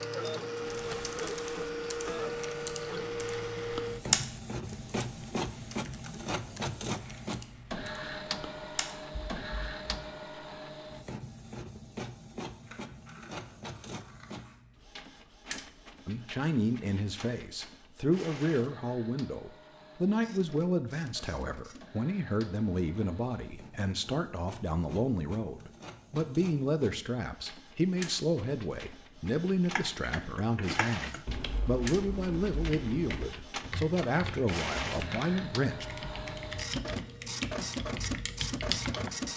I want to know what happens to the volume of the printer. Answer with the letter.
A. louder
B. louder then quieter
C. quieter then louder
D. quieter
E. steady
C.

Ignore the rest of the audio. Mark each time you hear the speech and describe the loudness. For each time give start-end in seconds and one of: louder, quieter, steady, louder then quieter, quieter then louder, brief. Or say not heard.
16.1-35.9 steady.